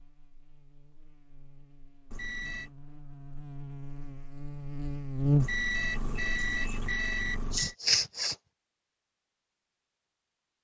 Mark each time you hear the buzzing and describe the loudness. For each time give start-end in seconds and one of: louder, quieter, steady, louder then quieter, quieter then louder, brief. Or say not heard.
0.0-6.7 louder.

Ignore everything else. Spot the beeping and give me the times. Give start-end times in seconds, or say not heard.
2.1-2.7, 5.3-7.8.